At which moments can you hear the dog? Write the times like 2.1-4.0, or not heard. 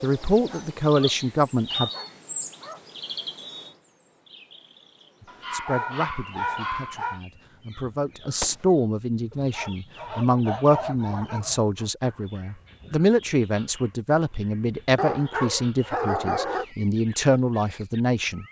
0.3-2.8, 5.2-7.2, 9.3-11.9, 14.9-16.6.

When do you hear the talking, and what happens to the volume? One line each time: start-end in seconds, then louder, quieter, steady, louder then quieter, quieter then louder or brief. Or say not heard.
0.0-1.9 brief
5.2-18.4 louder.